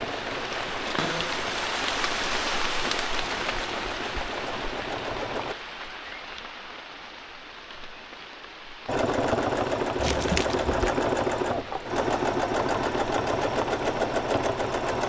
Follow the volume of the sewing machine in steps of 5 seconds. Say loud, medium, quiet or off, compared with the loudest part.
medium, loud, loud.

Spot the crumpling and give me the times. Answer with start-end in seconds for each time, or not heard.
9.9-10.9.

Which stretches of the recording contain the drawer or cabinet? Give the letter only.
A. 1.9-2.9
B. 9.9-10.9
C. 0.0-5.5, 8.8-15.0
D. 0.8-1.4
D.